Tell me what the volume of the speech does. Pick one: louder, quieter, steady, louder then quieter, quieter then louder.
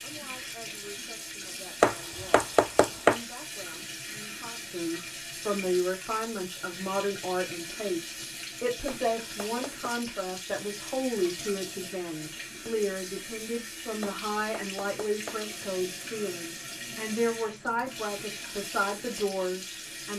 louder.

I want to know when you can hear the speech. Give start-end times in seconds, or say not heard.
0.0-20.1.